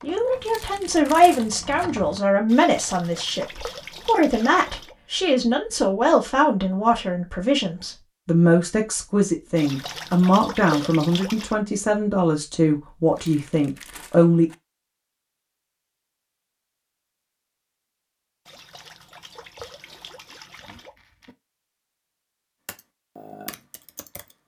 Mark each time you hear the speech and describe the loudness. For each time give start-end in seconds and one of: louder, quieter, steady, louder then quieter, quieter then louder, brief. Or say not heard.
0.0-14.5 steady.